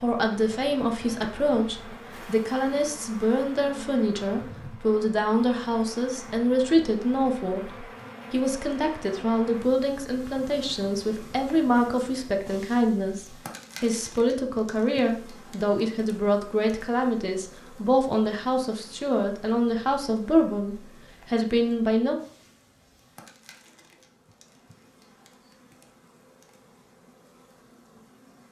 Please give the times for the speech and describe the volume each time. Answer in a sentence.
The speech can be heard from 0.0 to 22.2 s, at a steady volume.